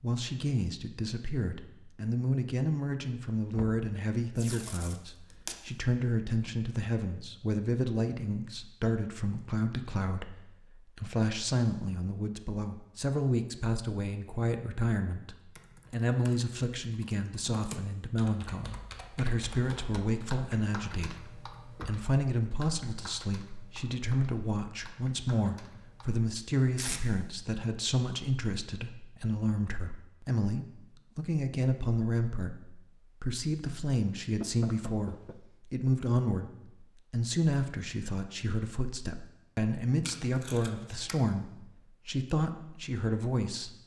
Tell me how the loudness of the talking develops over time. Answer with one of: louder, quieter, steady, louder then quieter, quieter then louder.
steady.